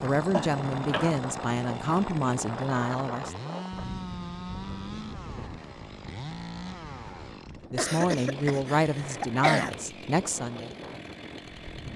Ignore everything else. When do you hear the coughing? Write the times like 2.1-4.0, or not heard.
0.3-1.2, 7.8-9.8.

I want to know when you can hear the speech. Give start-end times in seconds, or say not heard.
0.0-3.4, 7.7-10.7.